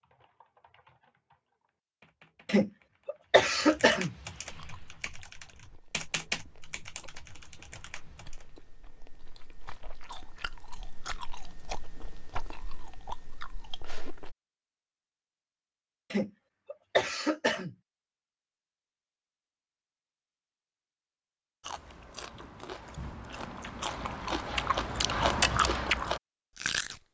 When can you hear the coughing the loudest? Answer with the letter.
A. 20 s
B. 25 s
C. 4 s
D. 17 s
C.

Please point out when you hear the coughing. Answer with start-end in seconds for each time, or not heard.
2.5-4.1, 16.1-17.8.